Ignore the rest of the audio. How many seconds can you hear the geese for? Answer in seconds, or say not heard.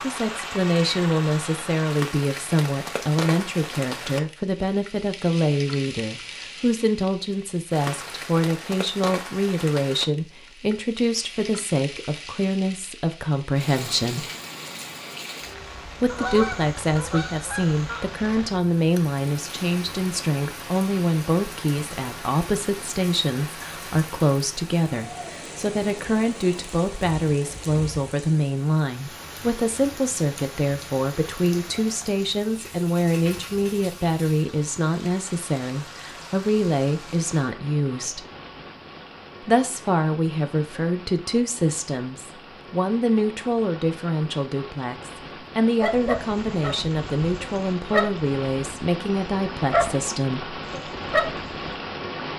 2 s.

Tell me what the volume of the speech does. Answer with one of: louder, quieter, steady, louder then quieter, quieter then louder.
steady.